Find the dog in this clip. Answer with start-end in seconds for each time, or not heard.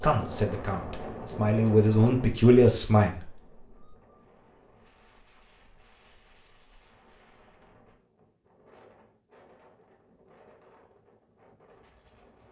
not heard.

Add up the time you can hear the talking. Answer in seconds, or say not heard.
3 s.